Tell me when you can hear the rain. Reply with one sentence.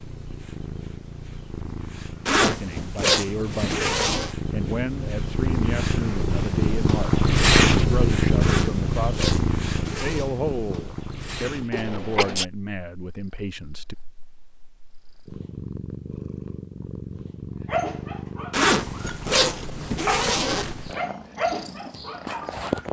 The rain can't be heard in this clip.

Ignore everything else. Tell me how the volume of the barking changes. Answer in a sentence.
The loudness of the barking goes up, then down.